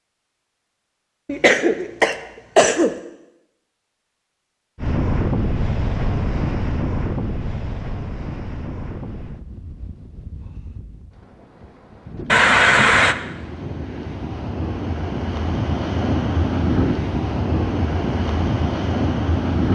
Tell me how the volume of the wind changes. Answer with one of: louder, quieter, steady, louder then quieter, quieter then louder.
quieter then louder.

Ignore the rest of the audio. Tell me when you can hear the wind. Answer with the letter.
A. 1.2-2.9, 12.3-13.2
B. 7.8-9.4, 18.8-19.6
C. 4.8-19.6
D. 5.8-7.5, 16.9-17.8
C.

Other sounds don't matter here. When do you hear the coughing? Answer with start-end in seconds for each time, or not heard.
1.2-2.9, 12.3-13.2.